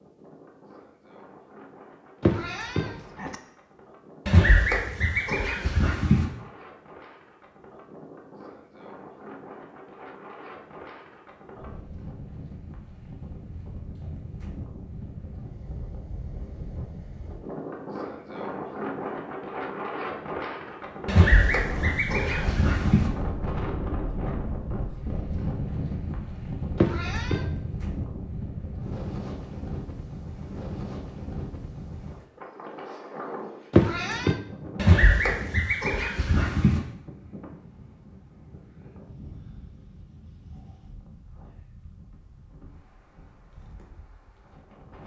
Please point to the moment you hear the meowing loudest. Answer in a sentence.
The volume of the meowing peaks at 34 seconds.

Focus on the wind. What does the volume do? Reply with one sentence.
The loudness of the wind goes up, then down.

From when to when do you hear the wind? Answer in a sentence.
The wind can be heard from 0.0 to 45.0 s.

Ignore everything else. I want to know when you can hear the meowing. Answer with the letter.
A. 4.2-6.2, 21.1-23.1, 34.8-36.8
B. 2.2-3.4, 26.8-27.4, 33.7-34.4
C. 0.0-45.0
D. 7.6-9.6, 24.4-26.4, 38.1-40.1
B.